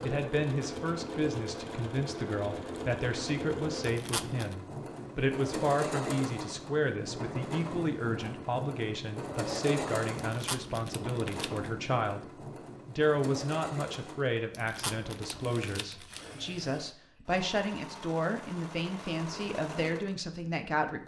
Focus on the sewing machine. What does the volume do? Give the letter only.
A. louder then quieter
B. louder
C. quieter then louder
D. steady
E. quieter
E.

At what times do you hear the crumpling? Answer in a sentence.
You can hear the crumpling from 3.8 to 4.5 s, from 10.2 to 11.7 s and from 14.5 to 16.3 s.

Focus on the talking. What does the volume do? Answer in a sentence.
The volume of the talking stays about the same.